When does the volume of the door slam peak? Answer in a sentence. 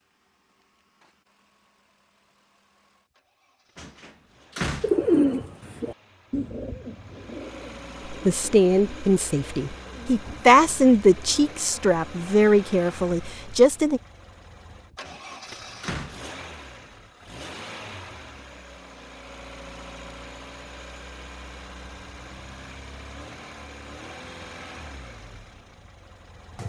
The volume of the door slam peaks at 5 seconds.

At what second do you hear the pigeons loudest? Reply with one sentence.
The volume of the pigeons peaks at 5 seconds.